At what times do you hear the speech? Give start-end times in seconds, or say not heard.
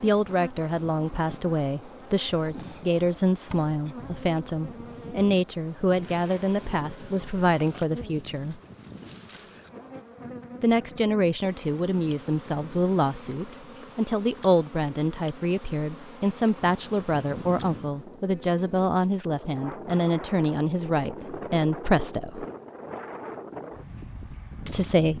0.0-8.6, 10.6-22.4, 24.6-25.1.